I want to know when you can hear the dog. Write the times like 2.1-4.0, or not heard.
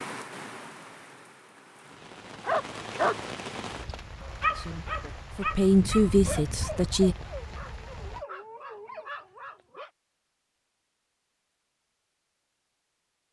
2.4-9.8.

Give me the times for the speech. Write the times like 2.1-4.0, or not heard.
4.5-7.2.